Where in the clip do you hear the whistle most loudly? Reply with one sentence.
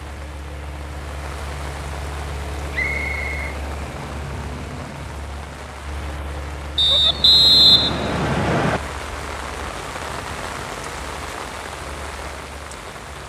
The volume of the whistle peaks at 8 seconds.